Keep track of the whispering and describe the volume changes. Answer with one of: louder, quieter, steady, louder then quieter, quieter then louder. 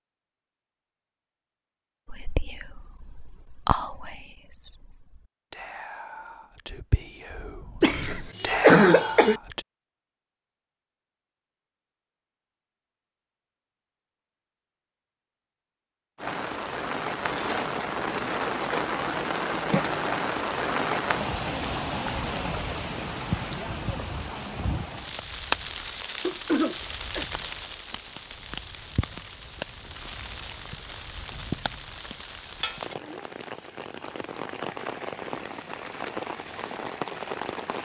quieter then louder.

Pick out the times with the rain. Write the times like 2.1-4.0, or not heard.
16.1-37.8.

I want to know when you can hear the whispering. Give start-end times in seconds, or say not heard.
2.0-9.7.